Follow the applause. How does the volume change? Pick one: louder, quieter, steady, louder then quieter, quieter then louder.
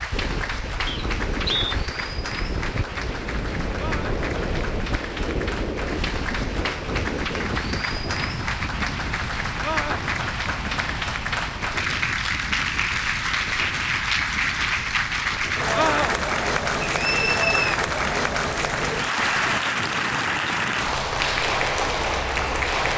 louder.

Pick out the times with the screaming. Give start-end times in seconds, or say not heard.
3.8-4.2, 9.6-10.0, 15.7-16.1.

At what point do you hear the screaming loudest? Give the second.
16 s.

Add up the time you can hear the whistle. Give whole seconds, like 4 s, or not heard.
2 s.